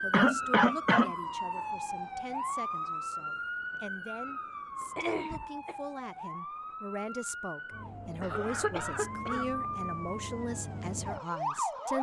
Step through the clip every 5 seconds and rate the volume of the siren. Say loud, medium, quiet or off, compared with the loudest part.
loud, medium, loud.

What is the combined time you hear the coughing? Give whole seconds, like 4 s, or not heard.
3 s.